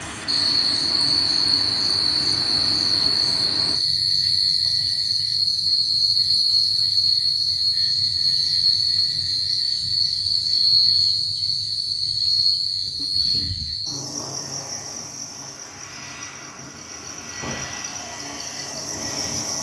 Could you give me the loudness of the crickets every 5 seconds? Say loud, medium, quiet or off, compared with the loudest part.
loud, loud, loud, quiet.